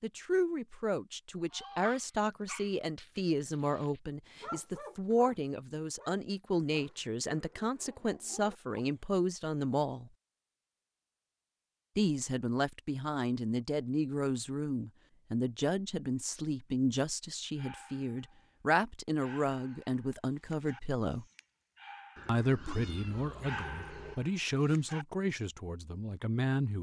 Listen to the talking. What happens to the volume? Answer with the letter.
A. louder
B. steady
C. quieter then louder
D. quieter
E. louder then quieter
B.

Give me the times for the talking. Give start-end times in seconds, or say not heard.
0.0-10.1, 11.9-21.2, 22.2-26.7.